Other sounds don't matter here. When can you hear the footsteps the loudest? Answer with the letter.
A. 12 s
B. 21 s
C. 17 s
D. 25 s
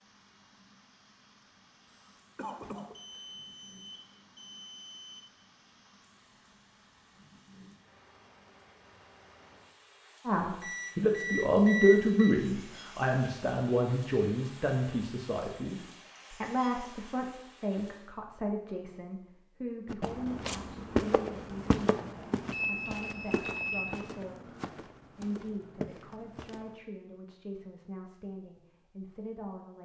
B.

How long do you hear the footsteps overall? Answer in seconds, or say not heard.
7 s.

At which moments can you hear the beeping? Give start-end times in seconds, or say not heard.
2.9-5.2, 10.6-12.4, 22.5-23.9.